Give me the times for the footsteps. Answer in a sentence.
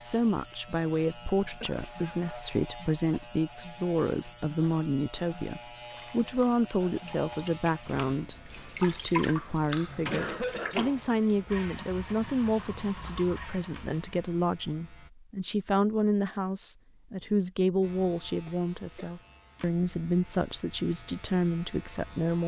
You can't hear the footsteps here.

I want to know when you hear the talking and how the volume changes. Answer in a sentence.
You can hear the talking from 0.1 to 22.4 s, at a steady volume.